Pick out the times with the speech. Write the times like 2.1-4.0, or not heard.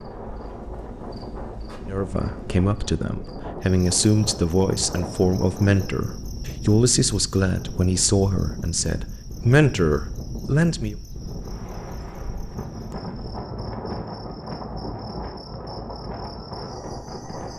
1.9-10.9.